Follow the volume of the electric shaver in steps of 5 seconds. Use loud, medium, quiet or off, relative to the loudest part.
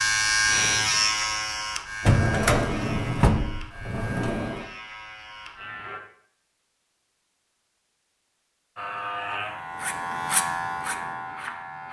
loud, medium, loud.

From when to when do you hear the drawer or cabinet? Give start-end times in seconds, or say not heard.
2.0-4.7.